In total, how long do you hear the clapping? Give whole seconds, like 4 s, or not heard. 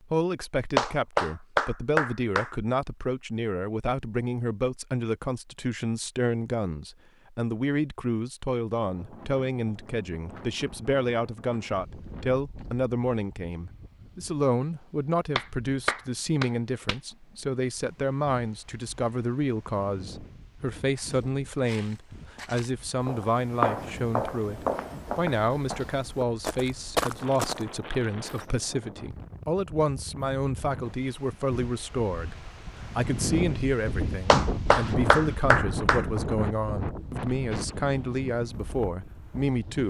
5 s.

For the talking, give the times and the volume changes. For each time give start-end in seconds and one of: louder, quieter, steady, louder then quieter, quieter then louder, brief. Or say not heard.
0.1-39.8 steady.